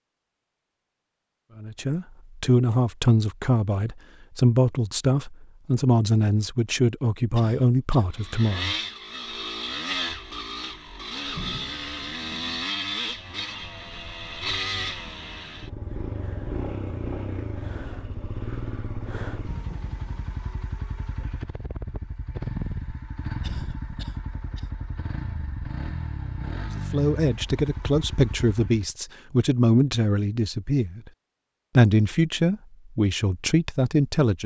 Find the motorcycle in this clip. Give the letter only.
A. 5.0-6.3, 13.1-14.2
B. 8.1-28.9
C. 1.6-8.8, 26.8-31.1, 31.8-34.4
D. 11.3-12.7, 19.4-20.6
B.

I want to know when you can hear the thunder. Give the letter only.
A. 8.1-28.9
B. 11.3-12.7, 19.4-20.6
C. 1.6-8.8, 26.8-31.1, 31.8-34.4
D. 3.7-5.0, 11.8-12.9
B.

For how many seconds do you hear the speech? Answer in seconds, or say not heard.
14 s.